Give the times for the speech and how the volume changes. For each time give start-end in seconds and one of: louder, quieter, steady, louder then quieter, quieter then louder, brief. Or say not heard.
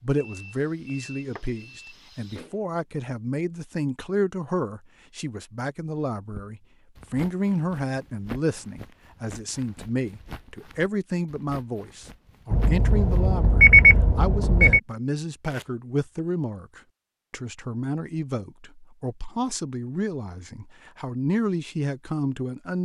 0.0-22.8 steady.